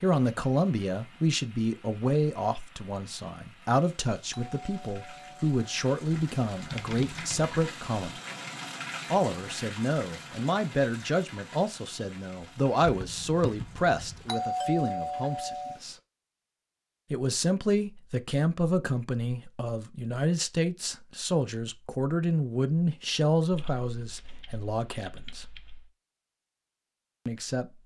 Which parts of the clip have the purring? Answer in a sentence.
You can't hear the purring here.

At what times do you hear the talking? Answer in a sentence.
The talking can be heard from 0.0 to 8.2 s, from 9.1 to 15.9 s, from 17.1 to 25.4 s and from 27.2 to 27.8 s.